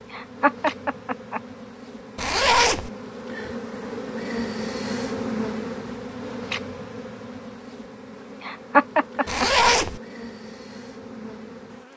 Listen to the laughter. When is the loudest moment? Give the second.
9 s.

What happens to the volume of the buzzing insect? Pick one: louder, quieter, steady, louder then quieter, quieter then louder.
louder then quieter.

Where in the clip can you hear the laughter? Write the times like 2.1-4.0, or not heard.
0.1-1.4, 8.4-9.7.